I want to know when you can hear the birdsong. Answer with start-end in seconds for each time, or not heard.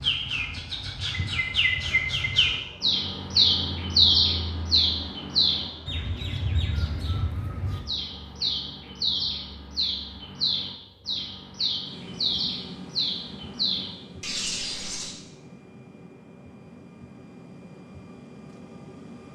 0.0-15.2.